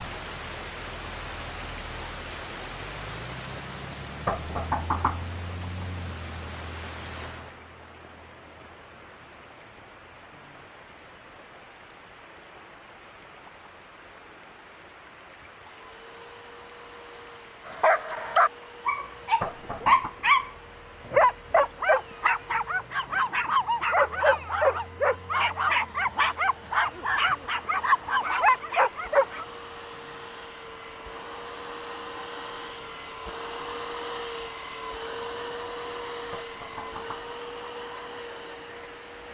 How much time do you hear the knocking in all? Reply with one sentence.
The knocking can be heard for 3 seconds in total.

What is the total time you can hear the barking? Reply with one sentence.
The barking can be heard for 12 seconds in total.